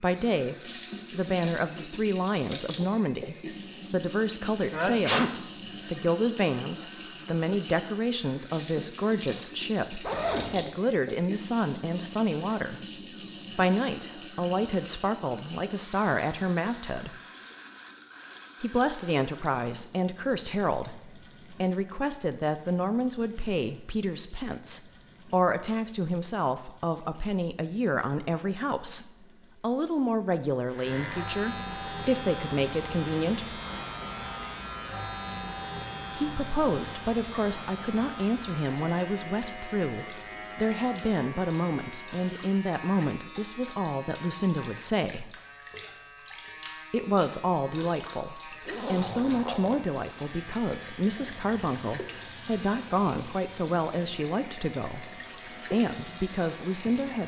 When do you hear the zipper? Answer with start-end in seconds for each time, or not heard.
10.0-10.7, 48.6-50.4.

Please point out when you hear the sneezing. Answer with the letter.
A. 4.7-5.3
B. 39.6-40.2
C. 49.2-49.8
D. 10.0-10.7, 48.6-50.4
A.